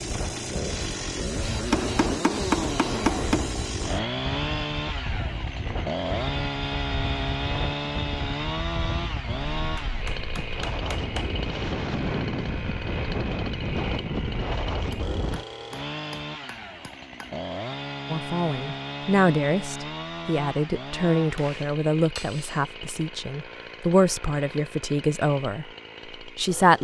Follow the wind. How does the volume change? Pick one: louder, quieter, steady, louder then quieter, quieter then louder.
louder.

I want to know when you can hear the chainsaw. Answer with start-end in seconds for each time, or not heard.
0.0-26.7.